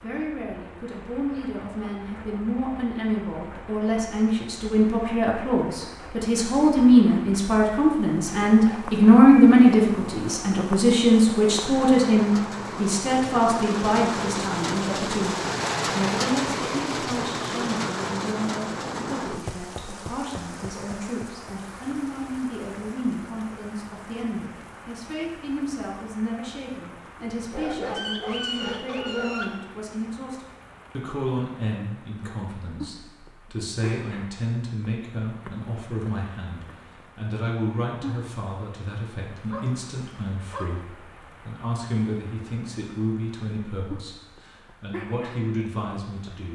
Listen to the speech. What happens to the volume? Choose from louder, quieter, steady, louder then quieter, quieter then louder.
quieter.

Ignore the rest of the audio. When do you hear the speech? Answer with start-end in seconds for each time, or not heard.
0.0-46.4.